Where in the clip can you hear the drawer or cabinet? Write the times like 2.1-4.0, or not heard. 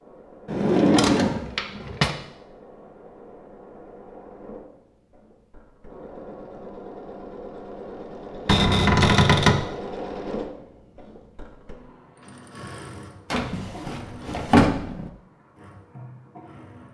0.5-2.1, 8.4-9.7, 13.3-15.1.